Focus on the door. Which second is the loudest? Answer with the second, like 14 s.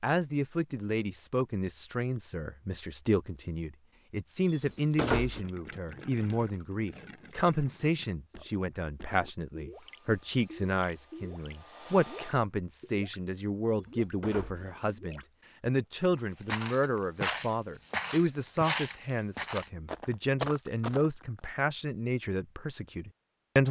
5 s.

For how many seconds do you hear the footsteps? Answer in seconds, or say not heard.
5 s.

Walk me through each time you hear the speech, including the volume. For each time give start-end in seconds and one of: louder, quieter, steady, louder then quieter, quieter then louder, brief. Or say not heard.
0.0-23.6 steady.